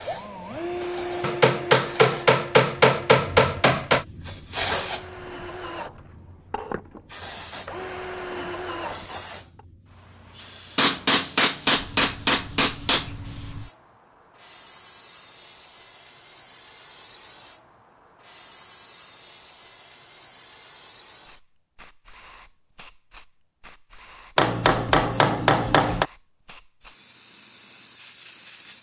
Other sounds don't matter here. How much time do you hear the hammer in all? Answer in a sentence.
You can hear the hammer for 7 seconds altogether.